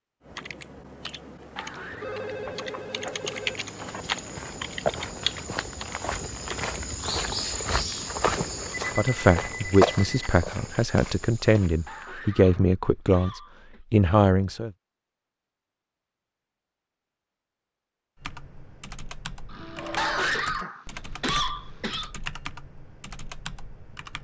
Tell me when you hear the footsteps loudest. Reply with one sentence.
The volume of the footsteps peaks at 10 seconds.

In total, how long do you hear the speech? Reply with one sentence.
You can hear the speech for 6 seconds altogether.